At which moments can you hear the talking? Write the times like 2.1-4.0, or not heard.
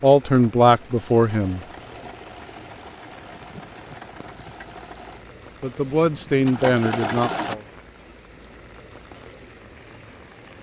0.0-1.6, 5.6-7.6.